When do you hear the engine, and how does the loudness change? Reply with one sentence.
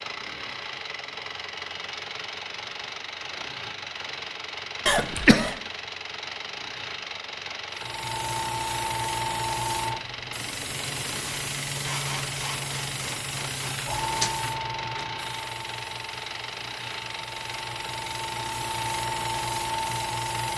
The engine can be heard from 0.0 to 20.5 s, at a steady volume.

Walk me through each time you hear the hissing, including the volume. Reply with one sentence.
You can hear the hissing from 7.7 to 20.5 s, getting quieter then louder.